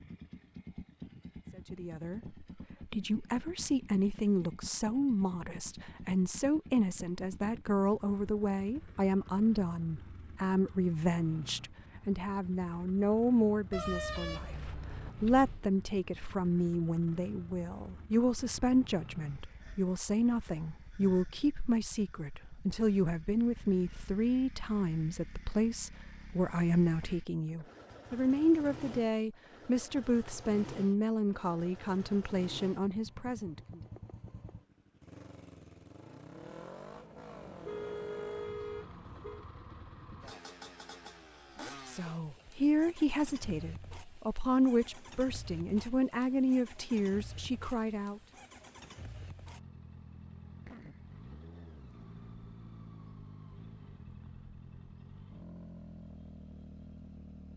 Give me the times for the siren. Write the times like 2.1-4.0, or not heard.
not heard.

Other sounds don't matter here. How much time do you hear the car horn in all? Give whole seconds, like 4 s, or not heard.
4 s.